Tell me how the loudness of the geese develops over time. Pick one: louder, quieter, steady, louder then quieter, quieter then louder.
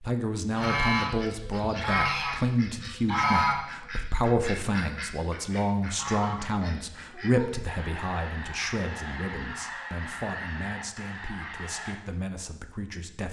quieter.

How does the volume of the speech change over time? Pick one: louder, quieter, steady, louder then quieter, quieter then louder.
quieter.